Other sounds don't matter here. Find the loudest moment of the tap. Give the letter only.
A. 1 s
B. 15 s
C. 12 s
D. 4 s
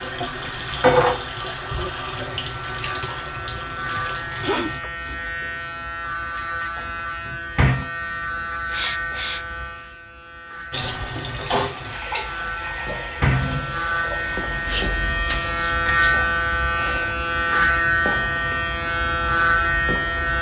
A.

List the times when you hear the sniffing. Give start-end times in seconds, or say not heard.
4.0-5.2, 8.7-9.9, 14.7-17.2.